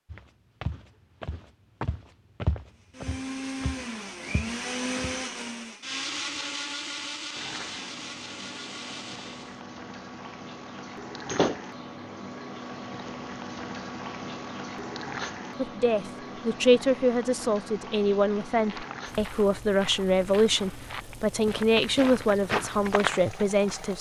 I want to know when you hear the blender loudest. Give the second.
5 s.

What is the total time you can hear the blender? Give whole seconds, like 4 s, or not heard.
7 s.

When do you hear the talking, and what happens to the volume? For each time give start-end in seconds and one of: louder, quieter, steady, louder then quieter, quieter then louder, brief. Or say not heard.
15.6-23.9 steady.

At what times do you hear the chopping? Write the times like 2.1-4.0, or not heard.
not heard.